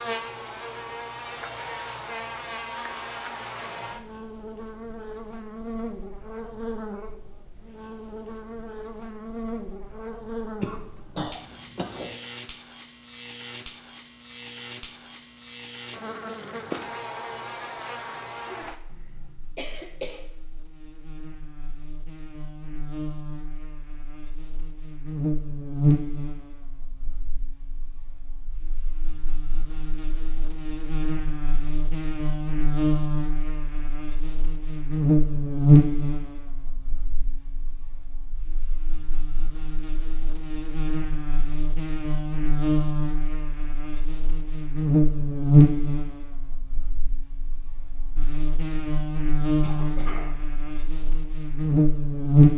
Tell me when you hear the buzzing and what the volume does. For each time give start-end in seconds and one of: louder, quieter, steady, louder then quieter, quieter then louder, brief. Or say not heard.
0.0-52.5 louder.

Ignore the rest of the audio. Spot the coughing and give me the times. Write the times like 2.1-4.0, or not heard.
10.6-12.2, 18.9-20.2, 49.6-50.4.